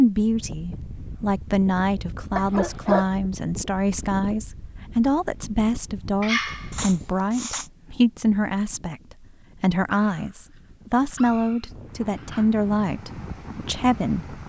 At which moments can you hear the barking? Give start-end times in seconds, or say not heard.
2.4-3.1, 6.2-7.7, 9.9-12.5.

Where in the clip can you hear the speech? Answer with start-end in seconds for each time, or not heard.
0.0-9.0, 9.6-14.3.